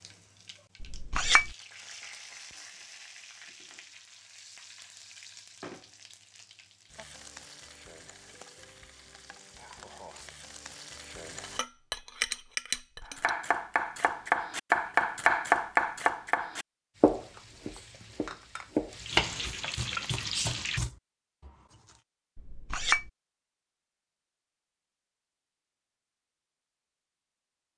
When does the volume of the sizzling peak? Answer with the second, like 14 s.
20 s.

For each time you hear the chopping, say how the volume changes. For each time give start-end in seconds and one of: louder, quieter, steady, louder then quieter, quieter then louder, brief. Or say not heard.
13.2-21.5 quieter.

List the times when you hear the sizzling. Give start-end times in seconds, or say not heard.
0.0-11.6, 16.9-20.8.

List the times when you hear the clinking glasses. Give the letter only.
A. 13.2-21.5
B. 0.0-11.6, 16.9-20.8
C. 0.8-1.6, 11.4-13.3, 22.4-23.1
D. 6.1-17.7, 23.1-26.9
C.